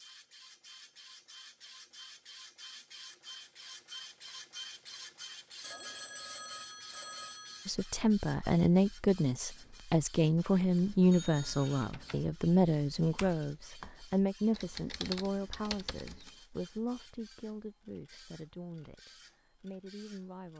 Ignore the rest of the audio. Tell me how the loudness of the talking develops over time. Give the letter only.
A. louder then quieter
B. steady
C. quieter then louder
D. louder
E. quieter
E.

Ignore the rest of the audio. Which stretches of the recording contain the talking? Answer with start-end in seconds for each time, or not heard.
7.7-20.5.